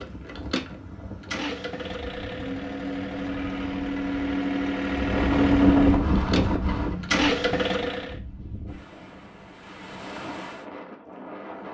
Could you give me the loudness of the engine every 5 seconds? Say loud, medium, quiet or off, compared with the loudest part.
medium, loud, off.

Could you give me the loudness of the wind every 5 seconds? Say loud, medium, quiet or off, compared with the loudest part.
quiet, loud, medium.